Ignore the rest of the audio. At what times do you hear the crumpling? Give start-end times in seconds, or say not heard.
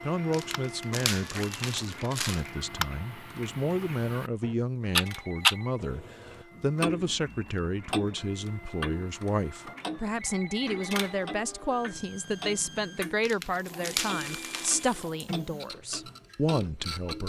0.3-2.5, 13.2-15.1.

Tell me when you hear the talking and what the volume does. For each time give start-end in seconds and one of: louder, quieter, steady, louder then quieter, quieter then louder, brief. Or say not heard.
0.0-17.2 steady.